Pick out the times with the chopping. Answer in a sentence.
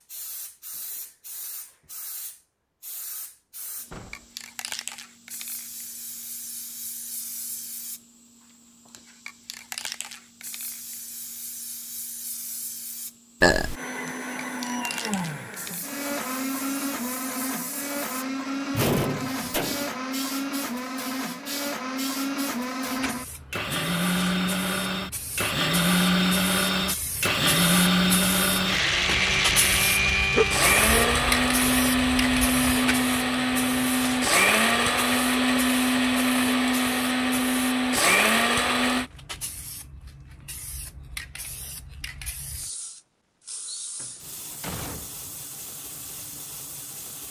The chopping can't be heard in this clip.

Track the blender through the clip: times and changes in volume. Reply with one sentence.
You can hear the blender from 13.7 to 39.1 s, getting louder.